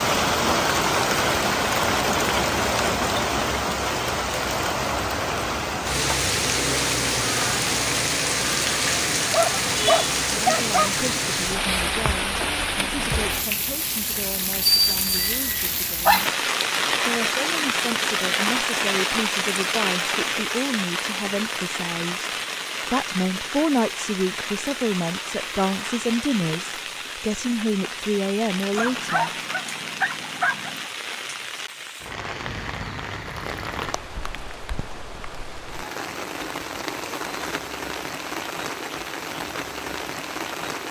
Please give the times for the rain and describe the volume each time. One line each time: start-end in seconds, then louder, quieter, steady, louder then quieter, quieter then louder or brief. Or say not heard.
0.0-40.8 quieter.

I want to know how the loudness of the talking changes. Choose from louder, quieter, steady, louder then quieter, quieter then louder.
louder.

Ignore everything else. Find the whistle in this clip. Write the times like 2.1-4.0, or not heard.
not heard.